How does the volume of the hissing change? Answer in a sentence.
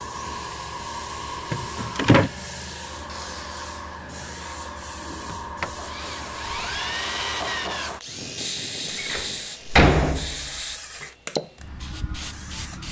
The volume of the hissing stays about the same.